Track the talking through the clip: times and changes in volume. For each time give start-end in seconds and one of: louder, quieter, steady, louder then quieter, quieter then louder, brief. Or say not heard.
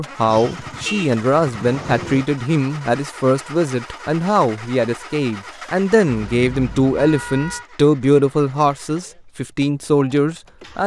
0.0-10.8 steady.